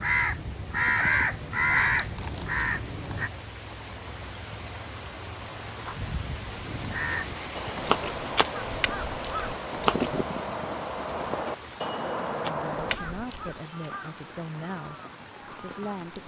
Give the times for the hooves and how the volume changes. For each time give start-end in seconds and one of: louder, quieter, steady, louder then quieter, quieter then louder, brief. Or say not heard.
3.2-12.9 louder.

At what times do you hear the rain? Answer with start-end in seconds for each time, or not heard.
0.0-16.2.